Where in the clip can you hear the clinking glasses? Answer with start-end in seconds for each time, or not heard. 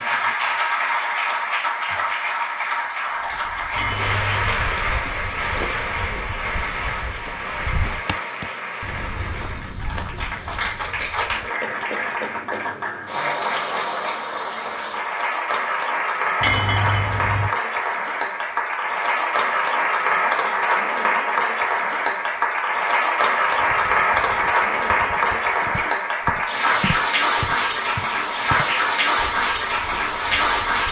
3.8-4.5, 16.4-17.5, 23.6-25.9.